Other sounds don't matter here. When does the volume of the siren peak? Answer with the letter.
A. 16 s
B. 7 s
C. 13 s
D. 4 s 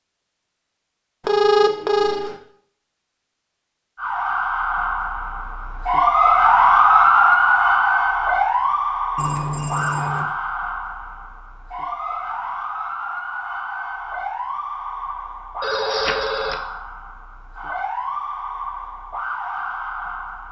B.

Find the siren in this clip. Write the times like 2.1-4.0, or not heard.
4.0-20.4.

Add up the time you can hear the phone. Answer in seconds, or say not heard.
3 s.